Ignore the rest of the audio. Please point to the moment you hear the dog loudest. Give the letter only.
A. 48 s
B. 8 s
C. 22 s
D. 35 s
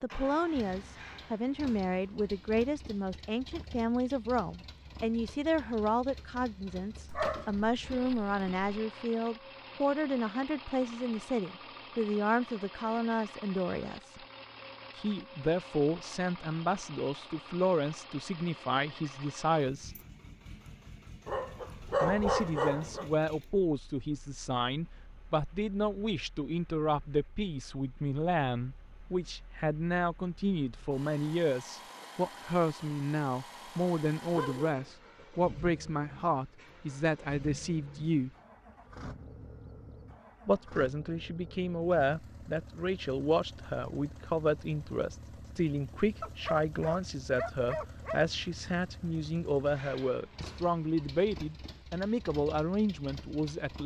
C.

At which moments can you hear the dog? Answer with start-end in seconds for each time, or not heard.
7.1-8.7, 21.2-23.1, 34.3-34.9, 46.2-48.2.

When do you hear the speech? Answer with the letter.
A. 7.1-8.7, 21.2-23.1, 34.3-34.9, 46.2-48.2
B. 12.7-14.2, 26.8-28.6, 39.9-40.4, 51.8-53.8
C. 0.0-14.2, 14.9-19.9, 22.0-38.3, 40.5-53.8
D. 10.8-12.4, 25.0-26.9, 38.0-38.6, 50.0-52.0
C.